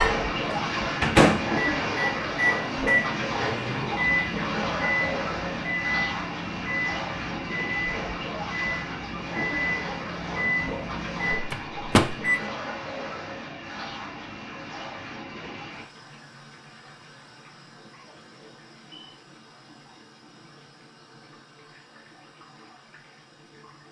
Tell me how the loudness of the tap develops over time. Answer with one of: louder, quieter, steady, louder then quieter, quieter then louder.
quieter.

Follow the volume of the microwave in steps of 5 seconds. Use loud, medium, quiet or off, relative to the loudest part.
loud, medium, loud, off, off.